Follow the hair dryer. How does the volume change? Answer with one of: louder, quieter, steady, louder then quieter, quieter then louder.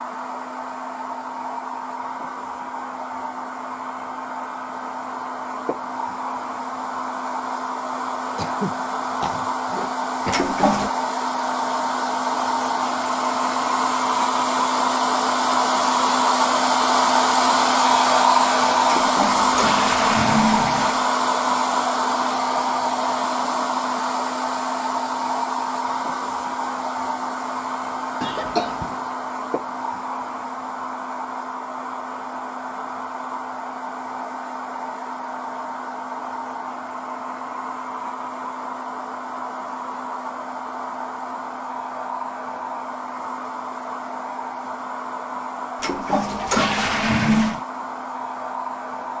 louder then quieter.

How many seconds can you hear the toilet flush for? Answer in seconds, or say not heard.
5 s.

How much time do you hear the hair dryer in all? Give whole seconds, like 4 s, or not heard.
49 s.